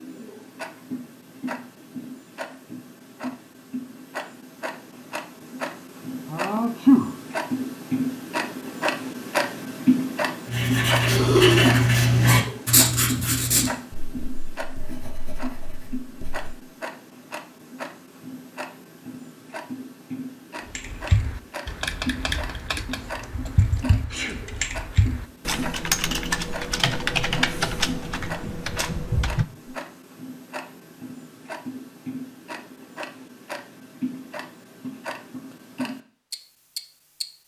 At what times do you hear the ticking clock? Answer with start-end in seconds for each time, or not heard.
0.0-37.2.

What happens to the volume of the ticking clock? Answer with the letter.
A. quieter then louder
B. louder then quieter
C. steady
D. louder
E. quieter
B.